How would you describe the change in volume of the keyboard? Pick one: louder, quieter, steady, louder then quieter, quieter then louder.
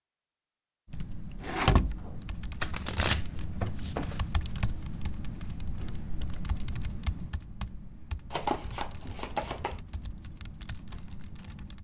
quieter.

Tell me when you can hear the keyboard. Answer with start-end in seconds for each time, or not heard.
0.9-11.7.